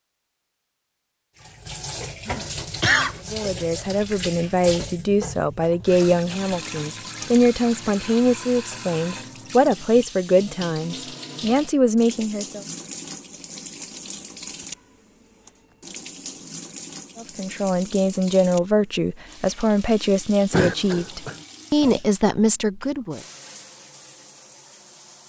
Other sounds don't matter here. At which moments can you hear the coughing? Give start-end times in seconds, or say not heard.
2.2-3.1, 20.5-21.4.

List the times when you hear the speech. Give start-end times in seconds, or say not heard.
3.3-12.7, 17.1-23.2.